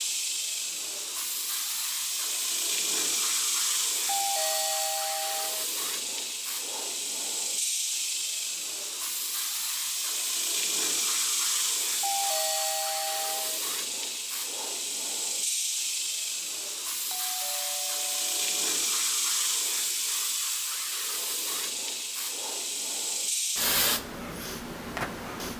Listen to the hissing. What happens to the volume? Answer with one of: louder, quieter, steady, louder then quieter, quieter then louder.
steady.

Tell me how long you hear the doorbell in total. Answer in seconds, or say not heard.
5 s.